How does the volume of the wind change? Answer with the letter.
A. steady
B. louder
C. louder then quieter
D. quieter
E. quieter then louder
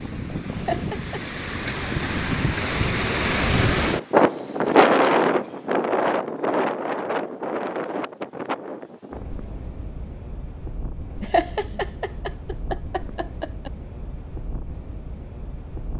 C.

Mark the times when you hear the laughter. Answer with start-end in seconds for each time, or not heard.
0.6-1.4, 11.2-13.7.